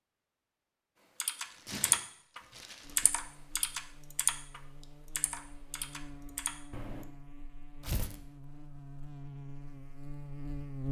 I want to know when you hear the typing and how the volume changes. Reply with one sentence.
The typing can be heard from 1.2 to 7.0 s, getting quieter.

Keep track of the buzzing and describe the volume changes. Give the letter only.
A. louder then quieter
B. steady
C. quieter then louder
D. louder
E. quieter
D.